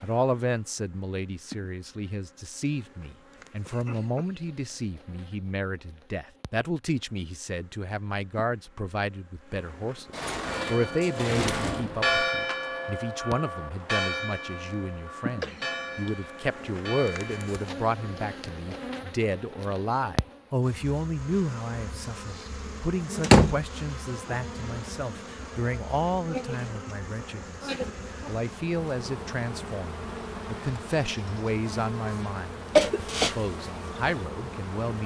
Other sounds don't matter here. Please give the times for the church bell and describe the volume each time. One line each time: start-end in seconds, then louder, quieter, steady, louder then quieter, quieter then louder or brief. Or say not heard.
10.4-18.3 quieter.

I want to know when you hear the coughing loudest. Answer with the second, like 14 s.
33 s.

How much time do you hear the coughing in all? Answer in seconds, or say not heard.
2 s.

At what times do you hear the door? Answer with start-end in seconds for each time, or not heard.
10.2-11.9, 23.2-23.6.